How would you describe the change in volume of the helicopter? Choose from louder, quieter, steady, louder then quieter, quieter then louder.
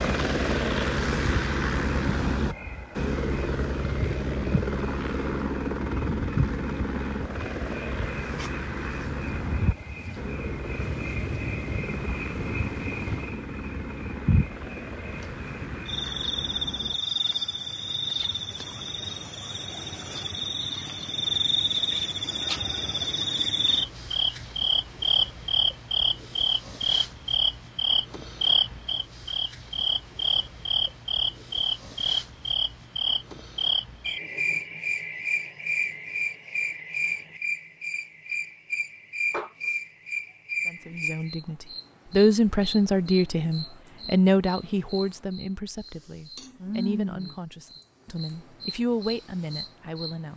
quieter.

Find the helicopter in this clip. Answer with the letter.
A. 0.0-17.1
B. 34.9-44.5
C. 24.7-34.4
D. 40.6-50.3
A.